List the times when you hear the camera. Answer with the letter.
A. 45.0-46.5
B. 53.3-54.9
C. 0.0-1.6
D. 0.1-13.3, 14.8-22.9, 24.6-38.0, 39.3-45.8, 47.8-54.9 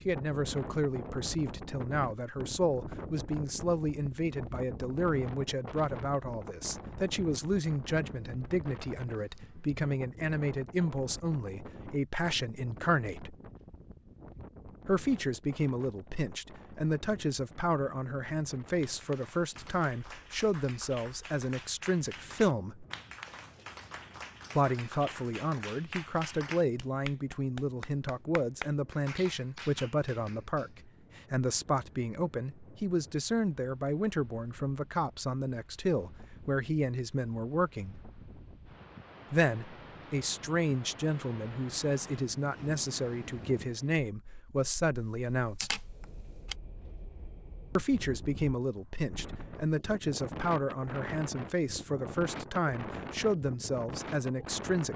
A.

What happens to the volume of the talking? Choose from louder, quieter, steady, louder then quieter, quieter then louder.
steady.